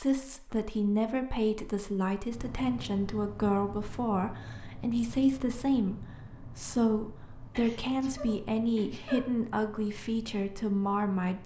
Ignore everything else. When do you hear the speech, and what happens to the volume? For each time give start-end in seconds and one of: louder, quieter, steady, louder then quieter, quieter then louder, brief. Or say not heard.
0.0-11.4 steady.